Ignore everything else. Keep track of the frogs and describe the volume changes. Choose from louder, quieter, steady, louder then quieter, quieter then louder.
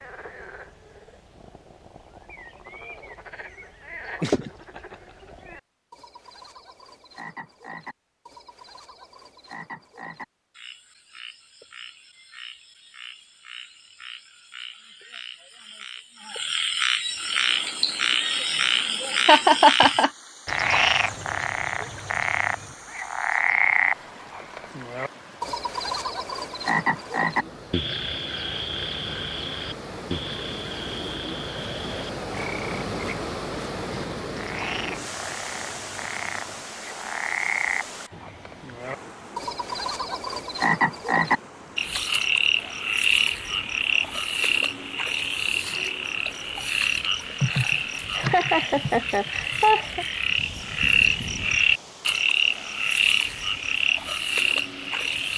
louder.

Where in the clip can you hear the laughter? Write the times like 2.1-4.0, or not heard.
4.2-4.8, 19.2-20.1, 47.4-50.0.